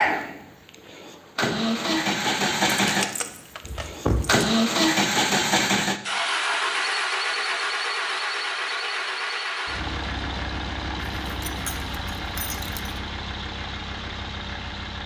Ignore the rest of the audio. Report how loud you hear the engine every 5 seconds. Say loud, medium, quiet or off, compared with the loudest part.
loud, loud, medium.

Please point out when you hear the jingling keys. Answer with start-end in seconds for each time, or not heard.
2.8-4.5, 11.2-13.0.